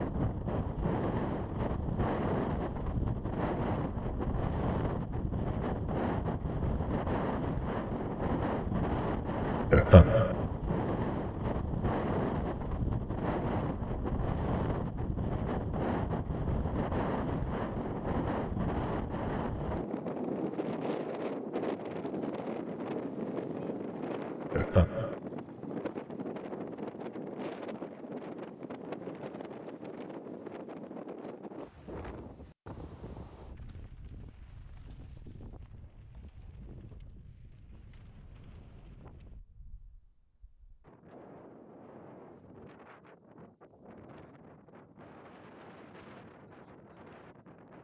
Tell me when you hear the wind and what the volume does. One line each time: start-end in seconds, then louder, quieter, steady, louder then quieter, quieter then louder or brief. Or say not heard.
0.0-47.7 quieter.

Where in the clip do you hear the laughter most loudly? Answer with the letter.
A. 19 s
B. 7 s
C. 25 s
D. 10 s
D.